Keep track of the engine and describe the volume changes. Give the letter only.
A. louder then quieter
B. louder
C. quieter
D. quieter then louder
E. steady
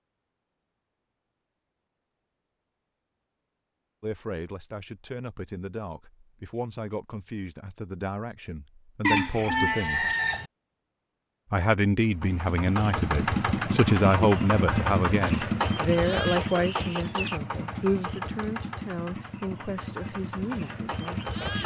C.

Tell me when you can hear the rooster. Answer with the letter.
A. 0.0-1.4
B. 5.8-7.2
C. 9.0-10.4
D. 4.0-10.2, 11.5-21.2
C.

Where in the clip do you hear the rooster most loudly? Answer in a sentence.
The loudest moment of the rooster is at 9 seconds.